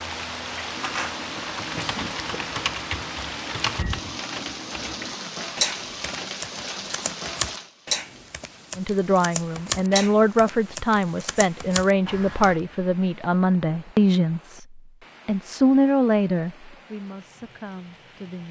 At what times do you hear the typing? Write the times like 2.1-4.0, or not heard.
0.7-12.6.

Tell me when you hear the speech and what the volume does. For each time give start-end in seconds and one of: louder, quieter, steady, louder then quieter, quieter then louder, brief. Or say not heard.
8.8-18.4 quieter.